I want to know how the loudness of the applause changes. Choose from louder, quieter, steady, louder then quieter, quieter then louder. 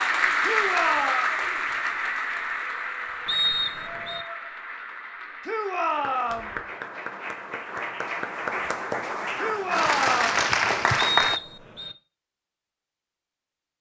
quieter then louder.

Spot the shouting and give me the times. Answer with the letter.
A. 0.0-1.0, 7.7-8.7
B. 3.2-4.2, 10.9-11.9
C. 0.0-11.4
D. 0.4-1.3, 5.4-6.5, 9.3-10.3
D.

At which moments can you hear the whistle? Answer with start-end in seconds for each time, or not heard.
3.2-4.2, 10.9-11.9.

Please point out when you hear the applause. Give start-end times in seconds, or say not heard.
0.0-11.4.